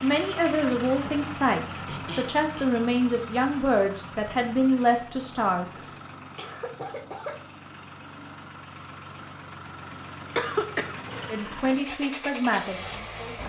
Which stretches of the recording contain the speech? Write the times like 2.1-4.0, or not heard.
0.0-5.7, 11.2-13.4.